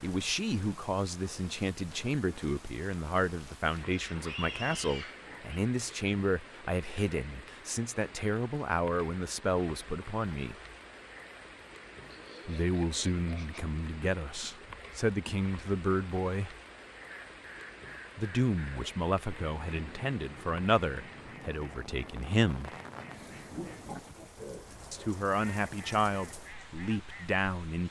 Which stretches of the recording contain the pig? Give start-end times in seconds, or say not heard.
3.9-5.6, 12.1-13.6, 23.5-25.1.